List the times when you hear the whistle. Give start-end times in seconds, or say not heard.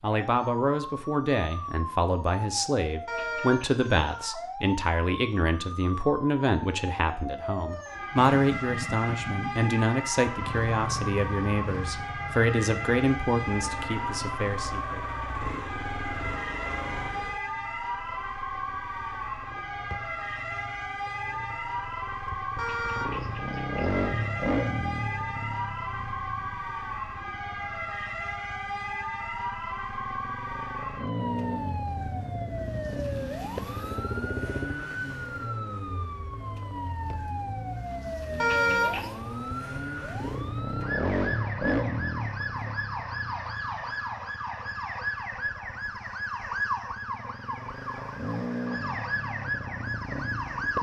not heard.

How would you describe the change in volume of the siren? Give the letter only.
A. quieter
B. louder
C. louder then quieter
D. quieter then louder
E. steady
E.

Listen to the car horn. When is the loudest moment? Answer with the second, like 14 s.
39 s.